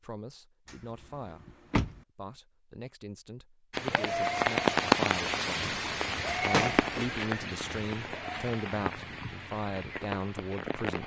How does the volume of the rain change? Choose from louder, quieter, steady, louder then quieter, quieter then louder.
quieter.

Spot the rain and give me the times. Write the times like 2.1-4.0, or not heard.
3.7-11.0.